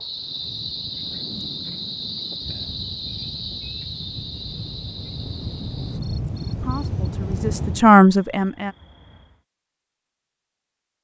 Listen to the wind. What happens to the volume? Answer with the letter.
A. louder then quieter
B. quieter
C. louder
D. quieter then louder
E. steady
C.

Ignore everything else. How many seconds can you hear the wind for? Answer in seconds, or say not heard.
8 s.